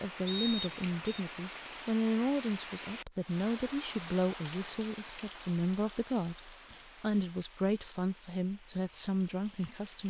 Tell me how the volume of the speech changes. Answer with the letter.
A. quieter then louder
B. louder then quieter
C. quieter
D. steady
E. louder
D.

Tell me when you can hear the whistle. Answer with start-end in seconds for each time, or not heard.
0.2-1.2.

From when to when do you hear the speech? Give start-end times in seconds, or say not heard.
0.0-10.0.